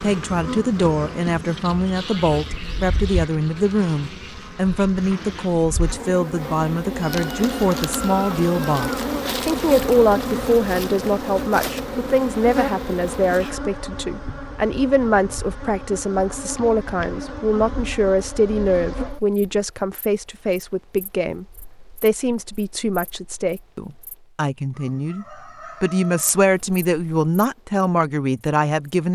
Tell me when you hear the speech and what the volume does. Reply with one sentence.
The speech can be heard from 0.0 to 29.1 s, at a steady volume.